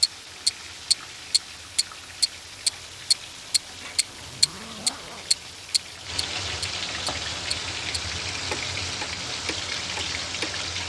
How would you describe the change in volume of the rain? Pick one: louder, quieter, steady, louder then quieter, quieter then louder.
louder.